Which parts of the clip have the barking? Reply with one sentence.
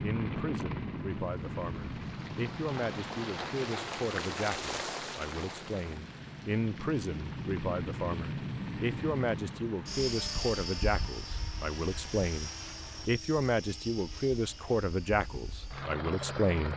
The barking can't be heard in this clip.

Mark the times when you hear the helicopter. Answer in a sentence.
The helicopter can be heard from 0.0 to 16.7 s.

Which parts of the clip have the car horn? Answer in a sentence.
You can't hear the car horn here.